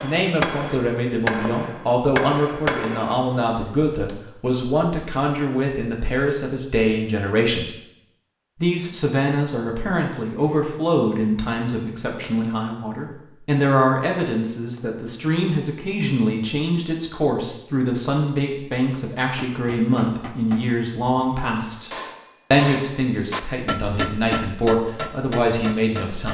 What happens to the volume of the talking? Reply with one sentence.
The volume of the talking stays about the same.